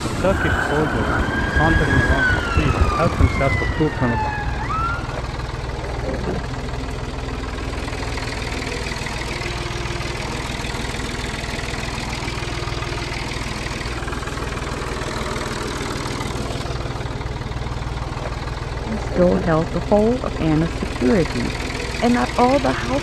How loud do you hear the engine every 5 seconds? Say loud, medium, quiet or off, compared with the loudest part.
medium, loud, loud, loud, loud.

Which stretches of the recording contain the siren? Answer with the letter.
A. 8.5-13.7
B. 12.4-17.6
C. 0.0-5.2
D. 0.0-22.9
C.